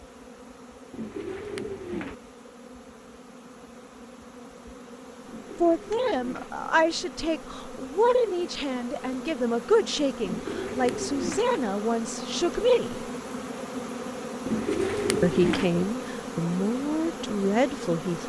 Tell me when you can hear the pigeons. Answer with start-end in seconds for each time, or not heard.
0.9-2.1, 5.2-6.5, 10.2-11.5, 14.4-15.7.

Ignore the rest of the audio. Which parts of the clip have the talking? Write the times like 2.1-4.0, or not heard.
5.6-13.1, 15.2-18.2.